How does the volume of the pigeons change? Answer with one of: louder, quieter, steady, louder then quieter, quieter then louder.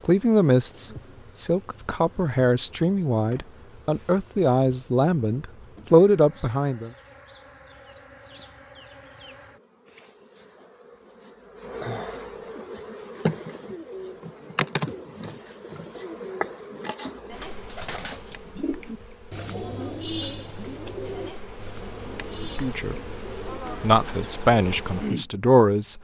louder then quieter.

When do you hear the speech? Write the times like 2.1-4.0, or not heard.
0.1-6.9, 22.6-23.1, 23.8-26.0.